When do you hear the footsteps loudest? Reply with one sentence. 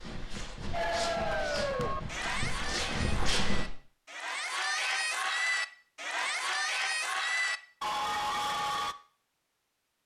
The volume of the footsteps peaks at 3 seconds.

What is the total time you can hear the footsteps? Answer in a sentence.
The footsteps can be heard for 4 seconds in total.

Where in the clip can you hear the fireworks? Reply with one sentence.
The fireworks can't be heard in this clip.